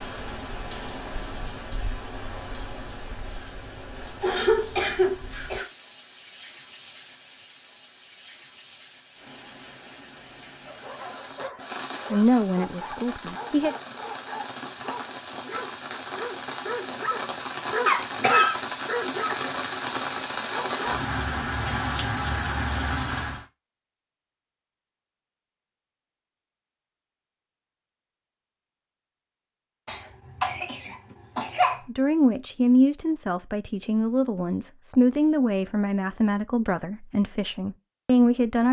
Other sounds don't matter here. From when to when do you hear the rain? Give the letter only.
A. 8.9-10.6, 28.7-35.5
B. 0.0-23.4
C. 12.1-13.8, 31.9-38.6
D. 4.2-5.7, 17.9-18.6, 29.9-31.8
B.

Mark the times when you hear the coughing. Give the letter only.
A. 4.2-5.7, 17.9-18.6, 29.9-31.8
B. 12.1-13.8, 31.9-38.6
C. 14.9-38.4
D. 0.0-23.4
A.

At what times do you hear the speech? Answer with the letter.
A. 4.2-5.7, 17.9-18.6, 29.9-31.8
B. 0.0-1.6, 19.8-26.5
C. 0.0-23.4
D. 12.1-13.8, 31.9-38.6
D.